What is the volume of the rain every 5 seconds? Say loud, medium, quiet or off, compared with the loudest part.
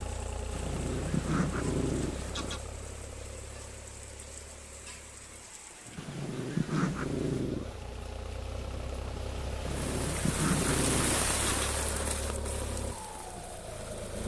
quiet, medium, loud.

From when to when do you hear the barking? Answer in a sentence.
You can hear the barking from 0.6 to 2.5 s, from 6.1 to 7.7 s and from 9.7 to 12.3 s.